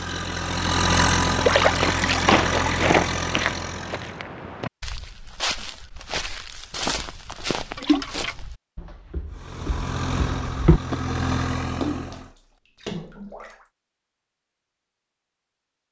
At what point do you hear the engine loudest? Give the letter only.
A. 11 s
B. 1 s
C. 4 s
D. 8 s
B.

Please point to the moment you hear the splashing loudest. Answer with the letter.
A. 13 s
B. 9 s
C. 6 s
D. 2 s
D.